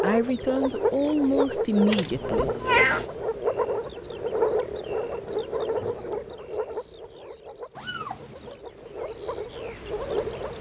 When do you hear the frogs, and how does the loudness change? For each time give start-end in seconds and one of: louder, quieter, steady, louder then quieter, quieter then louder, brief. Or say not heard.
0.0-10.5 quieter.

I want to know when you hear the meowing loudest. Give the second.
3 s.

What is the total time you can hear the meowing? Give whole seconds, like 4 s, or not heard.
2 s.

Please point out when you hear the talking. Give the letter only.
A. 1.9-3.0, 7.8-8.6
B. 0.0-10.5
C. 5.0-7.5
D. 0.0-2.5
D.